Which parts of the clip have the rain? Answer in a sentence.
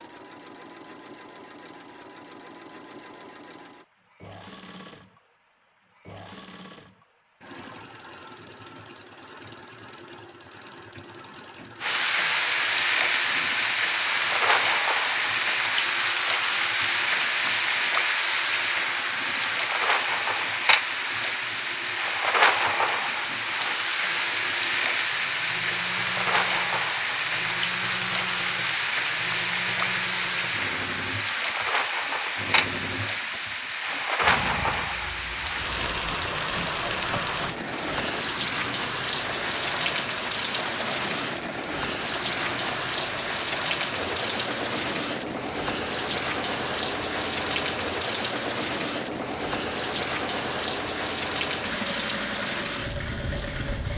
You can hear the rain from 11.8 to 53.9 s.